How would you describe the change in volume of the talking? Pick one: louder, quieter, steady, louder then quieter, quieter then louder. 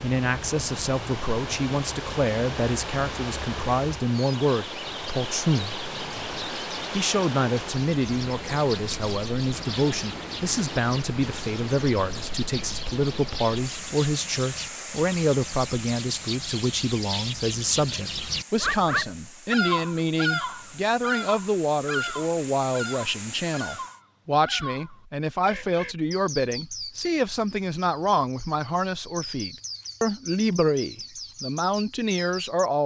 steady.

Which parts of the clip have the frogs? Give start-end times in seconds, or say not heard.
not heard.